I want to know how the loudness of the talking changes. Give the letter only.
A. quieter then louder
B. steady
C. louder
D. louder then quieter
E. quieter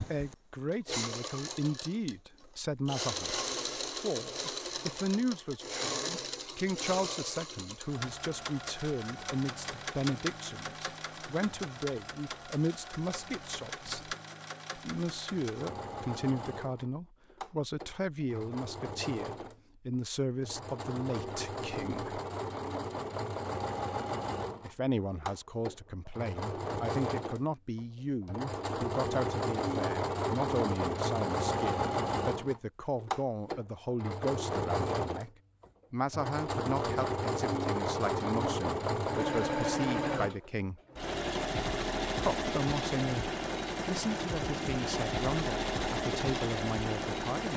B.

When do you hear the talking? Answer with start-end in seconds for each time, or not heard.
0.0-14.2, 14.8-22.2, 24.6-35.3, 35.9-40.8, 42.2-47.5.